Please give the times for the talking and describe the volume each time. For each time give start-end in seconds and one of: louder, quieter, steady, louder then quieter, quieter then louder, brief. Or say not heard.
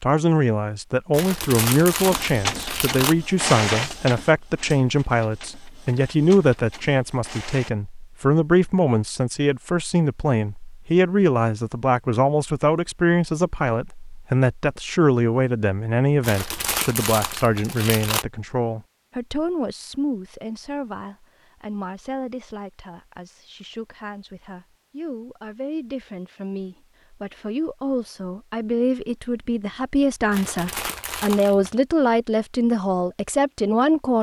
0.0-34.1 quieter then louder.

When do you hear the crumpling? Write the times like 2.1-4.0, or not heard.
1.1-3.1, 16.2-18.2, 30.3-31.8.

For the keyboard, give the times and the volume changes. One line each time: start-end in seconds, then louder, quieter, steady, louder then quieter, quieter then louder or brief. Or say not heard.
not heard.